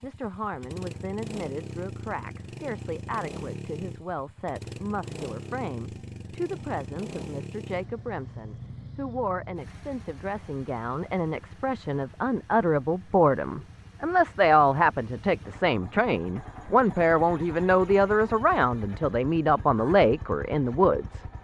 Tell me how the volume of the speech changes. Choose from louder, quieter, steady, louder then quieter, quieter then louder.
louder.